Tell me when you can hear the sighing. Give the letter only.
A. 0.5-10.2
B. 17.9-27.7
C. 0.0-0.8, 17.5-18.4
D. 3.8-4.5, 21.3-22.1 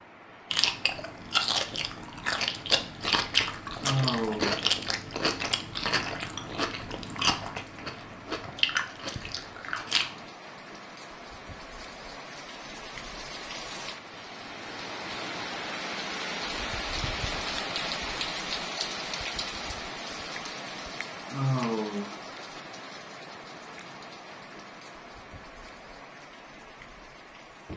D.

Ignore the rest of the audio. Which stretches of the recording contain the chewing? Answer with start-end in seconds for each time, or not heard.
0.5-10.2.